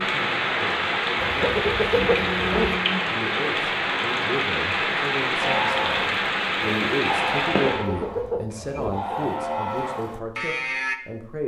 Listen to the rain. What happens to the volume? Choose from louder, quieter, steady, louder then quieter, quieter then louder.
steady.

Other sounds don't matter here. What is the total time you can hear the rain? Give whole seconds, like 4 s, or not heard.
8 s.